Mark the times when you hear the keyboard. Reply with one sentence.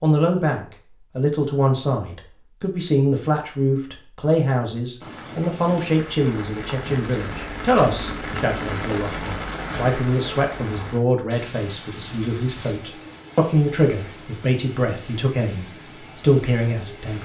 The keyboard can't be heard in this clip.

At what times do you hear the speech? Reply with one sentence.
The speech can be heard from 0.0 to 17.2 s.